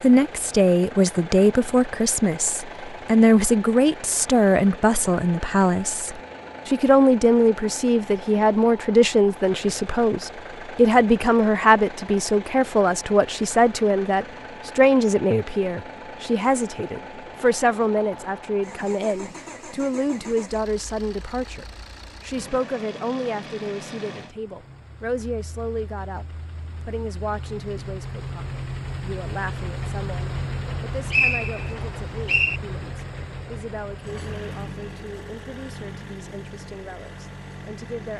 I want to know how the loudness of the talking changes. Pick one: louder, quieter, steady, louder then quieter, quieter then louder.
quieter.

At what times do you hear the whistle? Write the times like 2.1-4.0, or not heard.
31.1-32.6.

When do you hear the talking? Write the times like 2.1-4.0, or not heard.
0.0-38.1.